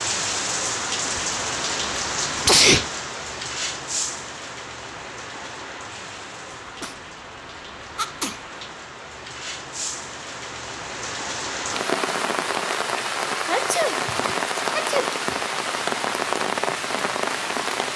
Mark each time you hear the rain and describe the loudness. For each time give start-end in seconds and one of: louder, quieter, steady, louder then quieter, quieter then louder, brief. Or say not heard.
0.0-17.9 quieter then louder.